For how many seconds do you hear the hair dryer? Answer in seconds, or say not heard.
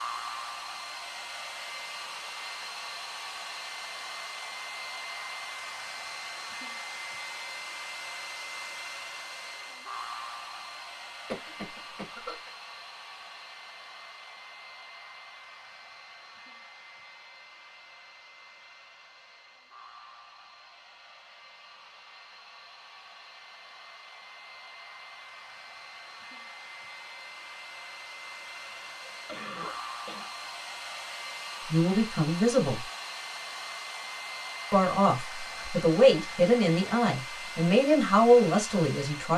39 s.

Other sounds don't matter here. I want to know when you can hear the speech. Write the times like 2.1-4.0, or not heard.
31.7-32.9, 34.7-39.3.